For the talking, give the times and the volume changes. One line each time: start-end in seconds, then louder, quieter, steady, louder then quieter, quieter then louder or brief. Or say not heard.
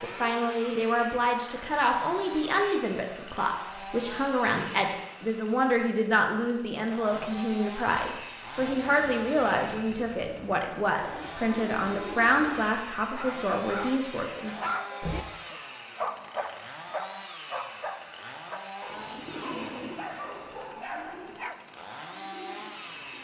0.0-14.7 steady.